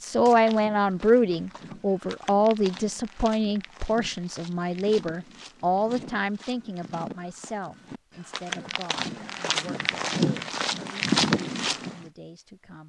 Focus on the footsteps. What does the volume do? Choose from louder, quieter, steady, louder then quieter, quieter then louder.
louder.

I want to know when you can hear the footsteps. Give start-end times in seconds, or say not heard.
0.0-12.1.